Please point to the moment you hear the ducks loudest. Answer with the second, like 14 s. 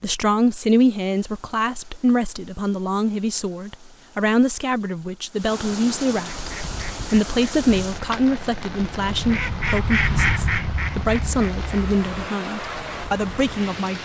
10 s.